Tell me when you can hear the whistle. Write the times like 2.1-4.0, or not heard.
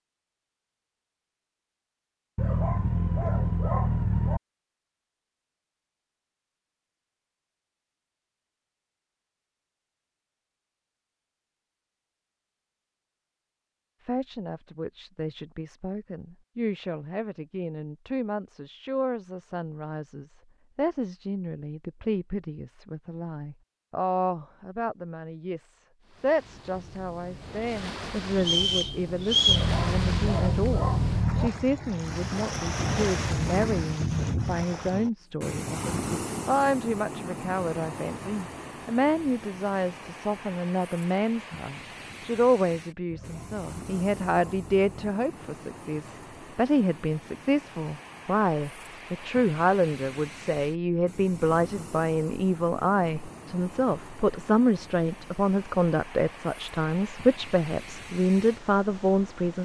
28.4-29.7.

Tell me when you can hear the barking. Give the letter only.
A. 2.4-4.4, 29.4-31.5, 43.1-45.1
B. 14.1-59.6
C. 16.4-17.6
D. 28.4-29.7
A.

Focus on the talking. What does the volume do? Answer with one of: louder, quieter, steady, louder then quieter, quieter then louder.
louder.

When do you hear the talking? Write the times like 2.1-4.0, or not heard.
14.1-59.6.